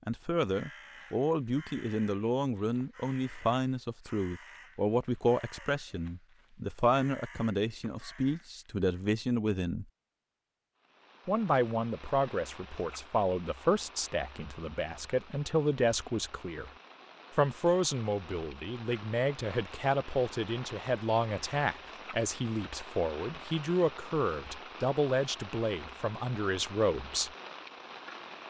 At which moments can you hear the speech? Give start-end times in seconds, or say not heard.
0.1-9.8, 11.2-16.7, 17.4-27.3.